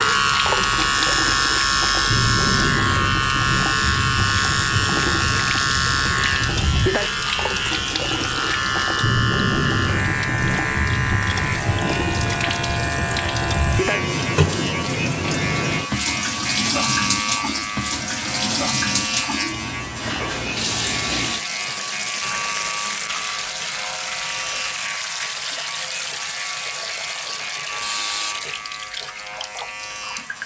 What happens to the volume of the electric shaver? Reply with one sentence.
The loudness of the electric shaver goes down.